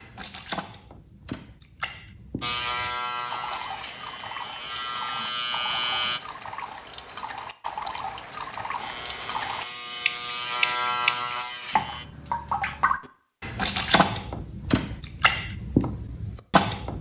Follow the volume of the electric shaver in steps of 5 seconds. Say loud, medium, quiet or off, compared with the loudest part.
loud, loud, loud, off.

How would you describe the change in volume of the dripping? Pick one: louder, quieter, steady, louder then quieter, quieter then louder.
louder.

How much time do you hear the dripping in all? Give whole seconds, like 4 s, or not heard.
17 s.